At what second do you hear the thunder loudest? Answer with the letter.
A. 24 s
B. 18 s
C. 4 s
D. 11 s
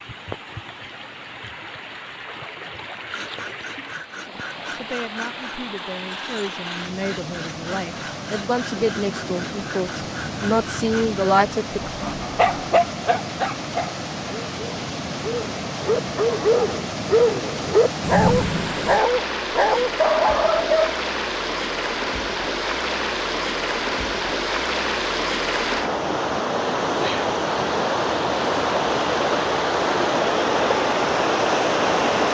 B.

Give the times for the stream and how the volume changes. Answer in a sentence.
You can hear the stream from 0.0 to 32.2 s, getting louder.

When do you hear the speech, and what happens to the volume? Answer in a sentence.
The speech can be heard from 4.3 to 11.9 s, getting louder.